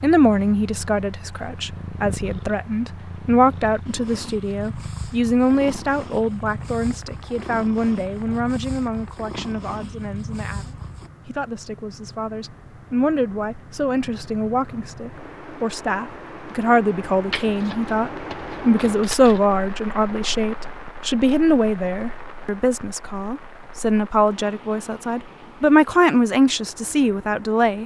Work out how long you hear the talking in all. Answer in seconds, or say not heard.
28 s.